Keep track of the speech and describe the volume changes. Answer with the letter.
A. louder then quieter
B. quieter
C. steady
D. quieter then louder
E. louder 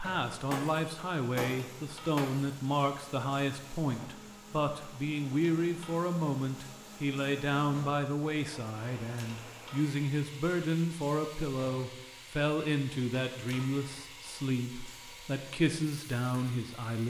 C.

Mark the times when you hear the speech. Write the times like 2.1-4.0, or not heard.
0.0-17.0.